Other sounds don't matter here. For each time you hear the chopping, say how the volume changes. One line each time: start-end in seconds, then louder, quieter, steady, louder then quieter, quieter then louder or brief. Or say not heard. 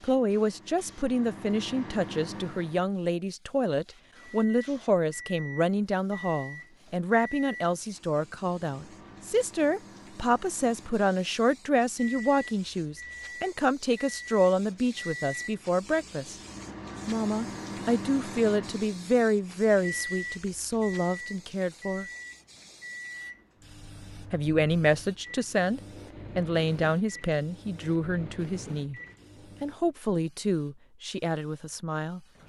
not heard.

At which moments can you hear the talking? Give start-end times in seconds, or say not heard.
0.0-16.4, 17.1-22.1, 24.3-29.0, 29.6-32.2.